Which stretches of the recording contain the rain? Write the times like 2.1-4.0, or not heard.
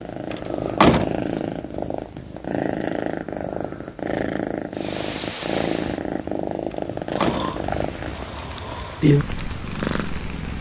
4.7-10.5.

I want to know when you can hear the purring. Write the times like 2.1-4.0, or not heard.
0.0-10.5.